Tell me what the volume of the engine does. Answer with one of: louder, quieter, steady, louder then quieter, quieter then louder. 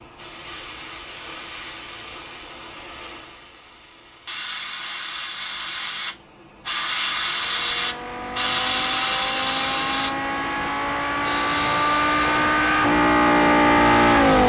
louder.